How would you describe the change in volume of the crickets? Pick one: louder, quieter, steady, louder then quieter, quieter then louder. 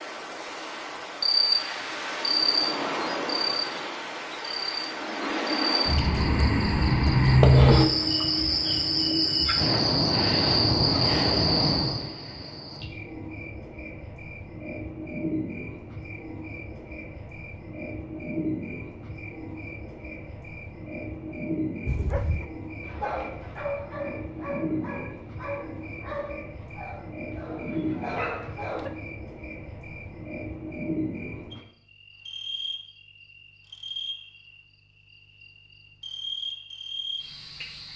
quieter.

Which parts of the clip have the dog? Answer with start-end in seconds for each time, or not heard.
21.9-28.9.